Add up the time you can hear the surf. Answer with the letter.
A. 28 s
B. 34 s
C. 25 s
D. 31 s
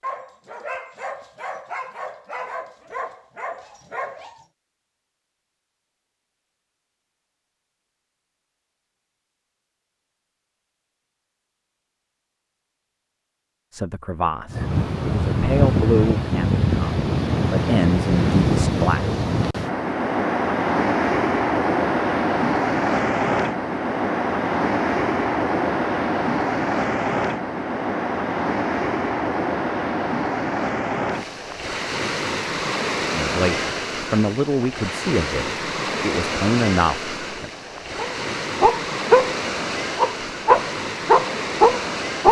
A.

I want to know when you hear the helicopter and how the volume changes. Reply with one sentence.
The helicopter can't be heard in this clip.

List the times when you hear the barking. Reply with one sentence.
You can hear the barking from 0.0 to 4.5 s and from 38.0 to 42.2 s.